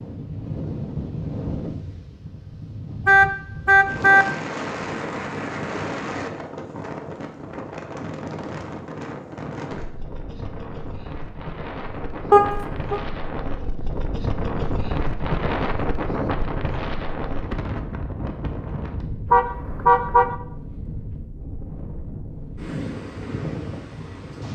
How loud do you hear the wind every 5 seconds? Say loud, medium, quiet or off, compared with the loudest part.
loud, loud, loud, loud, medium.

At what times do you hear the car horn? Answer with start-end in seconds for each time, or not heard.
3.0-4.2, 12.3-13.0, 19.3-20.3.